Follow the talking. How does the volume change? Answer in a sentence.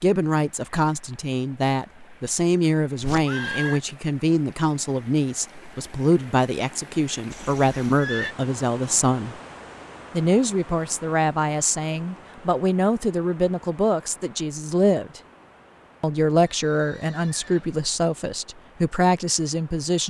The loudness of the talking stays about the same.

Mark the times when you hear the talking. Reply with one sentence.
The talking can be heard from 0.0 to 9.3 s, from 10.1 to 15.2 s and from 16.0 to 20.0 s.